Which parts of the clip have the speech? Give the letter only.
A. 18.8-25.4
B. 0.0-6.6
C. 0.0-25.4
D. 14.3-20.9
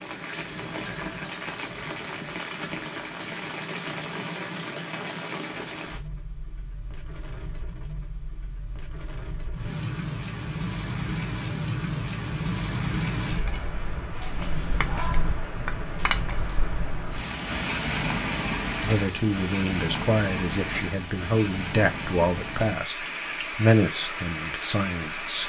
A.